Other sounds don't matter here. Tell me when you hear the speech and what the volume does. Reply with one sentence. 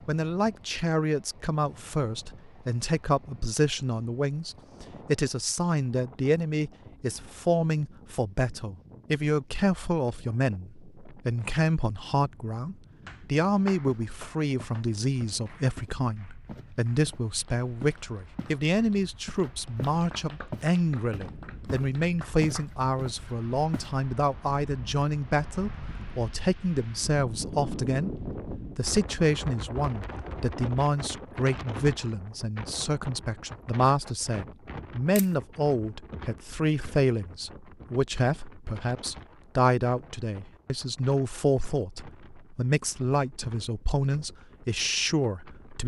You can hear the speech from 0.1 to 45.8 s, at a steady volume.